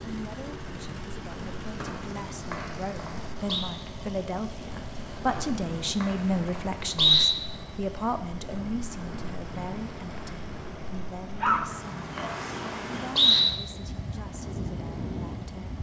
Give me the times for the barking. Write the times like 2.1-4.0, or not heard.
11.4-12.3.